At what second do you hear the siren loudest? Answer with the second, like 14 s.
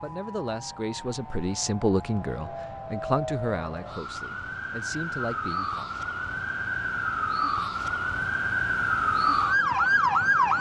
10 s.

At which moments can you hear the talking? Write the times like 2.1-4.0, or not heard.
0.0-6.0.